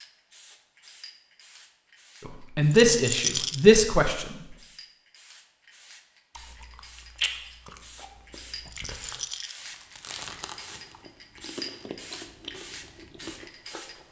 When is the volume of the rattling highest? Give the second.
3 s.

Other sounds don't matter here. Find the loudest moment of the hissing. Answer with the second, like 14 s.
12 s.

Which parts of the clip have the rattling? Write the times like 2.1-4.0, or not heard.
3.0-3.6, 8.7-9.6.